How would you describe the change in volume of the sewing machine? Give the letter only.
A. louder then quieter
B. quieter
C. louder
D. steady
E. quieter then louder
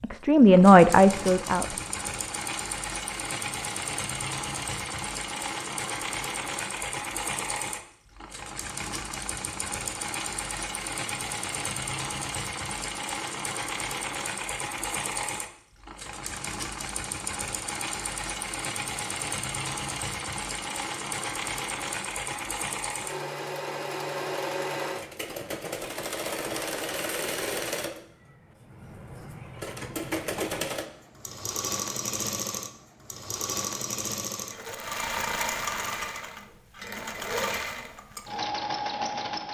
D.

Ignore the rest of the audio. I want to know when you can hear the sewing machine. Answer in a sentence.
The sewing machine can be heard from 0.0 to 39.4 s.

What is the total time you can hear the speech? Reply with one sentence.
The speech can be heard for 2 seconds in total.